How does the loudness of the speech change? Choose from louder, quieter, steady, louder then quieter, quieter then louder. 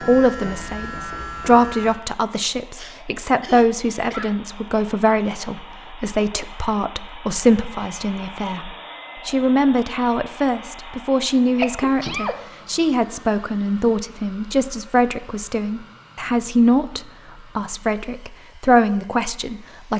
steady.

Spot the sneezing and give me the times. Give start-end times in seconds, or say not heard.
2.8-4.3, 11.2-12.3.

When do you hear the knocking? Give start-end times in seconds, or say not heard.
not heard.